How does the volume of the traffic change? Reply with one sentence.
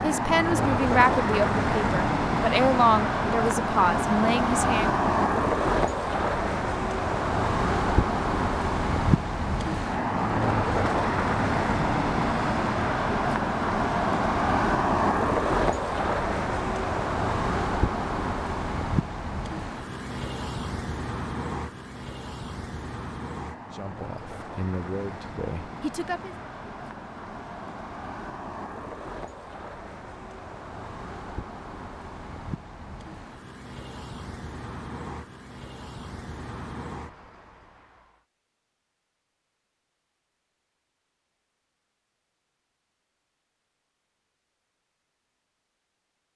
The loudness of the traffic goes down.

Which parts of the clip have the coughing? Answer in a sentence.
You can't hear the coughing here.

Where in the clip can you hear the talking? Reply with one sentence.
You can hear the talking from 0.0 to 4.9 s and from 23.7 to 26.4 s.